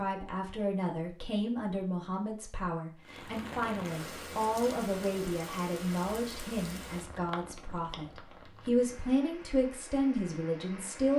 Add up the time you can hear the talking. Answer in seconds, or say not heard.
11 s.